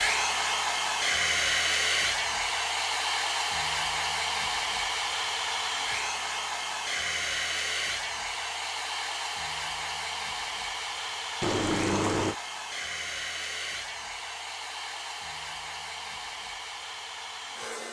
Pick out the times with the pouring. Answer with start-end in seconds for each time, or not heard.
11.4-12.3.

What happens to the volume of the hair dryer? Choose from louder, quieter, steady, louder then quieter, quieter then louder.
quieter.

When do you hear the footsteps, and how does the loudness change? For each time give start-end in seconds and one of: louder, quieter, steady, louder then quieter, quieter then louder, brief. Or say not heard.
not heard.